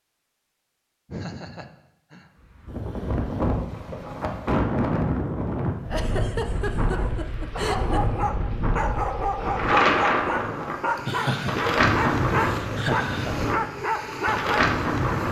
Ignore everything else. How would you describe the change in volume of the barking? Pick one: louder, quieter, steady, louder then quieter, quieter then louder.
steady.